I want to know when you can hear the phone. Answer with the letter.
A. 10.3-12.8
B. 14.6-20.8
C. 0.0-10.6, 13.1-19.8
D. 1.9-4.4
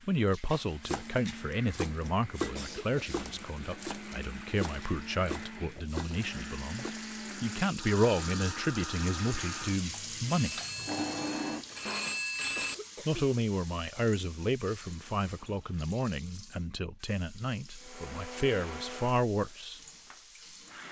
A.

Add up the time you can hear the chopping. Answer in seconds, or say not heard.
6 s.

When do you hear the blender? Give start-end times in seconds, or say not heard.
0.5-12.2, 17.8-20.8.